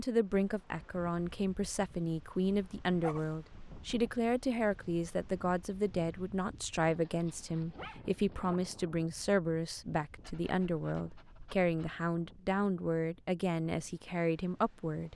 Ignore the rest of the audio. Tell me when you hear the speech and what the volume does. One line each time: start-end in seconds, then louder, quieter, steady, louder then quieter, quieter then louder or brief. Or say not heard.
0.0-15.1 steady.